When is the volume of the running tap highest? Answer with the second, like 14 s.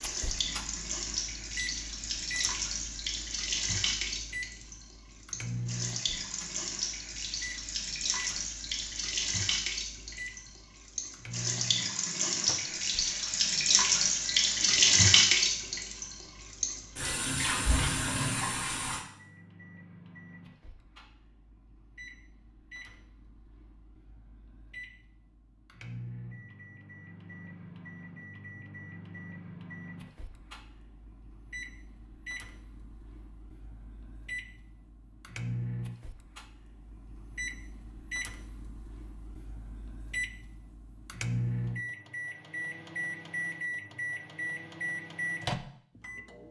15 s.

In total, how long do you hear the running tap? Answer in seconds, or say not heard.
19 s.